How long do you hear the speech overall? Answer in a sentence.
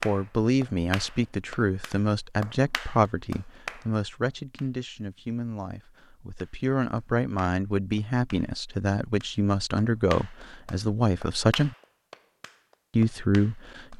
You can hear the speech for 13 seconds altogether.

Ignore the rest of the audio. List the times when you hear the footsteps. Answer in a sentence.
The footsteps can't be heard in this clip.